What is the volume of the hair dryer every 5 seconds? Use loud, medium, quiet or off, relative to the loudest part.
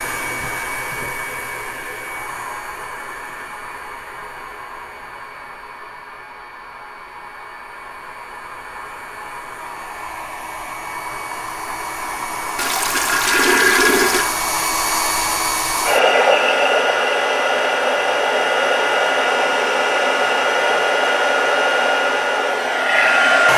quiet, quiet, medium, loud, loud.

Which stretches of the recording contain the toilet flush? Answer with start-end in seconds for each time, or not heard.
12.6-14.3.